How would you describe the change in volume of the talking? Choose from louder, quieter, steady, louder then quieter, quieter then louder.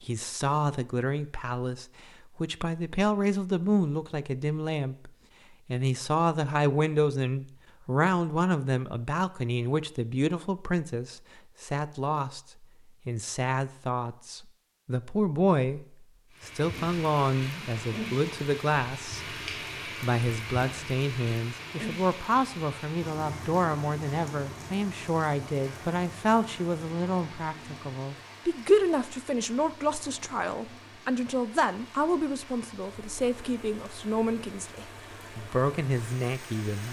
steady.